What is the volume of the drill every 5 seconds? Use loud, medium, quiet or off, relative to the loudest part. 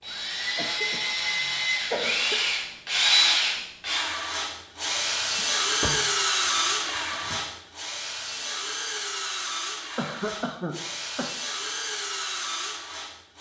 loud, loud, medium.